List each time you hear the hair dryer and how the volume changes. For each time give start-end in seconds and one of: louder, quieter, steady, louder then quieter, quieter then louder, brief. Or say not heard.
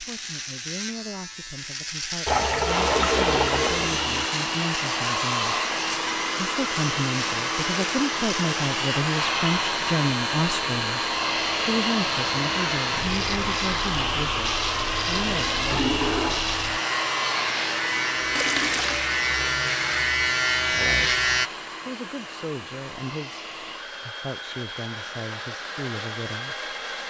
2.6-27.0 quieter.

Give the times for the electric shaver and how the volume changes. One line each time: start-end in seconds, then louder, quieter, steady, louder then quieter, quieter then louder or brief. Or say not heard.
0.0-21.5 louder.